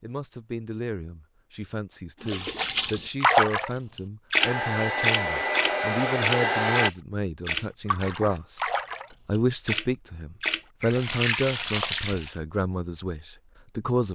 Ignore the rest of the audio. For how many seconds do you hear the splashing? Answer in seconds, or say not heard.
10 s.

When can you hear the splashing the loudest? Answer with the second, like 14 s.
3 s.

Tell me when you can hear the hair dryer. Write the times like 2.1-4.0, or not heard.
4.4-6.9.